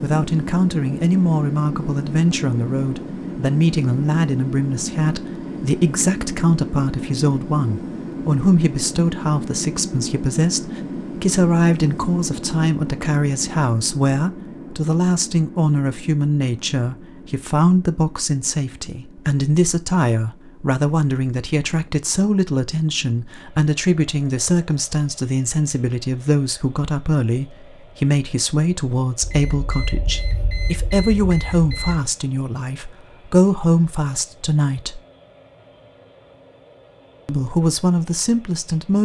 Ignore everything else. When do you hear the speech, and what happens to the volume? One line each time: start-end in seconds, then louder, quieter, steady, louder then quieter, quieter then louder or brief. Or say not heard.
0.0-35.0 steady
37.2-39.0 brief.